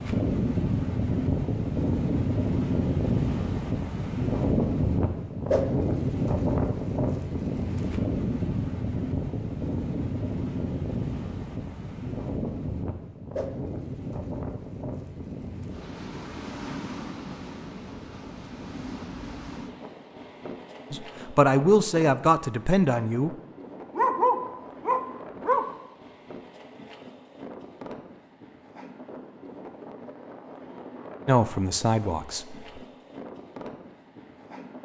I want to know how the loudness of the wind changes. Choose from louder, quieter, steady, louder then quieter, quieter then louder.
quieter.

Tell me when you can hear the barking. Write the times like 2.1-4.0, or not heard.
23.9-25.7.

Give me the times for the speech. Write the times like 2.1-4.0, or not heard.
20.9-23.4, 31.2-32.8.